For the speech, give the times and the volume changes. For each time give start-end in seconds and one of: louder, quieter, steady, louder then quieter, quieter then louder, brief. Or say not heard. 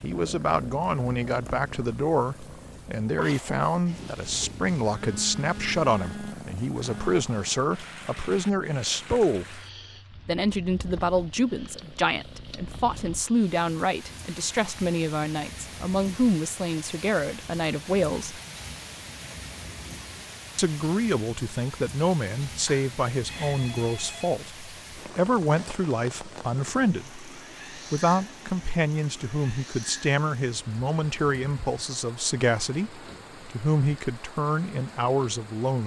0.0-9.6 steady
10.2-18.4 steady
20.6-35.8 steady.